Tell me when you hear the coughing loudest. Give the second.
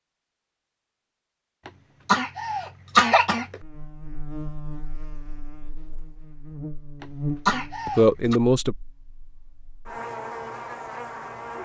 3 s.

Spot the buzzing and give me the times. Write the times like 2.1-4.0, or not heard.
3.6-11.6.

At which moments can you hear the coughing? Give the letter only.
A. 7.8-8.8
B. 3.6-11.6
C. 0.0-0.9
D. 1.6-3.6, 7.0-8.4
D.